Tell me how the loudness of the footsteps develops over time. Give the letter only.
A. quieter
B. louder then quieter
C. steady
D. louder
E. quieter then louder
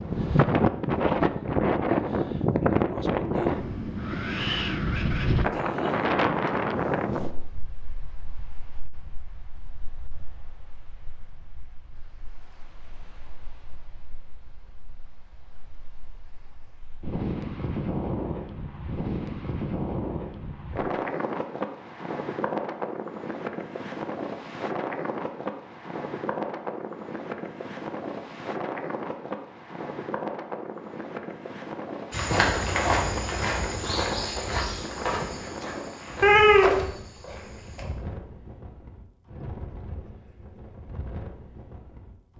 E.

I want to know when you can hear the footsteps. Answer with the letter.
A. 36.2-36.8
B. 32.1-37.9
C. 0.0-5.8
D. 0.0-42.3
B.